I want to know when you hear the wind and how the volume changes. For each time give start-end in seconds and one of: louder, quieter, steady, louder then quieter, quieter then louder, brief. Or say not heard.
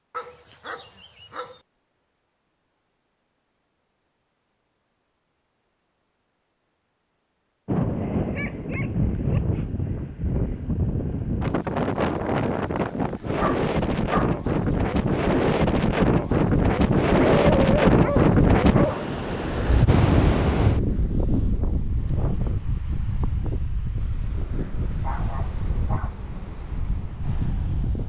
7.7-28.0 louder then quieter.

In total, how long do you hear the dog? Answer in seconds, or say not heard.
7 s.